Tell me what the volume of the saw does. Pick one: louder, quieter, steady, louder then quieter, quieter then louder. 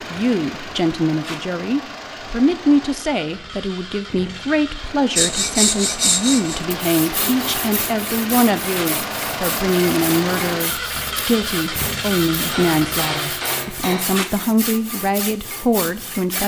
quieter.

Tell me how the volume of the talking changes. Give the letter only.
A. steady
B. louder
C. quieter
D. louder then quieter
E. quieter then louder
A.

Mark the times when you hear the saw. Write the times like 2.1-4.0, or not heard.
5.2-16.4.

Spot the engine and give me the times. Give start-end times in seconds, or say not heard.
0.0-13.6.